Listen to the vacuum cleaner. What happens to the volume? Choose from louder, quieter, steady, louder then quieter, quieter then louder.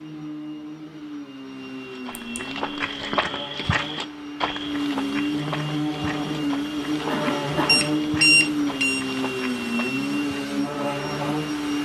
louder.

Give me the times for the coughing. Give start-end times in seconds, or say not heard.
7.1-7.8.